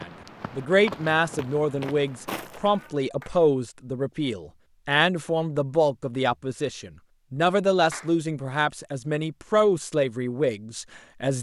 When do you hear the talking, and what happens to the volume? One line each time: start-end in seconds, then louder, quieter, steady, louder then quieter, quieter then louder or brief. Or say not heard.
0.0-11.3 steady.